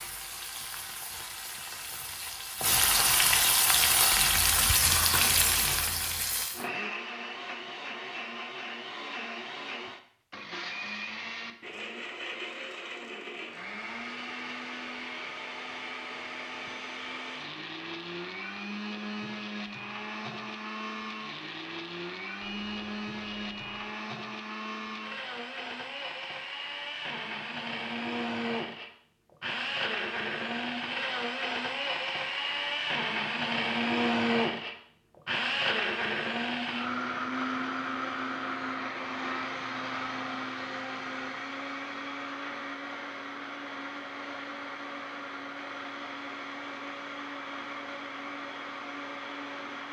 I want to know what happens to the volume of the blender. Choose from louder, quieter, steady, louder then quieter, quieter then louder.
louder then quieter.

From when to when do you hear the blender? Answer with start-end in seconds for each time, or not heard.
5.2-49.8.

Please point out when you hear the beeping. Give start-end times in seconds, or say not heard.
22.4-23.9.